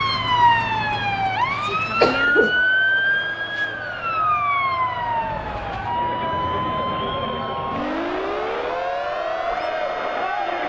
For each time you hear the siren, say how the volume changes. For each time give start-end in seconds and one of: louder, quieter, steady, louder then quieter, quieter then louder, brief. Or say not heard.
0.0-10.6 quieter.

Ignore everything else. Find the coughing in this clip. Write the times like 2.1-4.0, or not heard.
2.0-2.6.